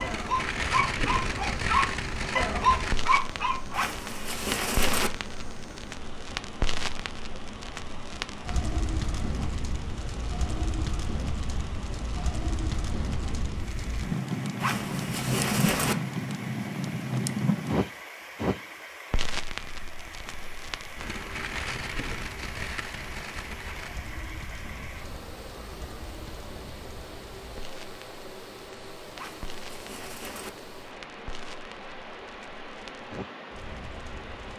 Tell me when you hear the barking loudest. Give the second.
3 s.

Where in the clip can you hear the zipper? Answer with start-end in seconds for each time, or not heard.
3.7-5.1, 14.6-15.9, 29.1-30.5.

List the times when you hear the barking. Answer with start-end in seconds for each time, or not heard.
0.0-3.9.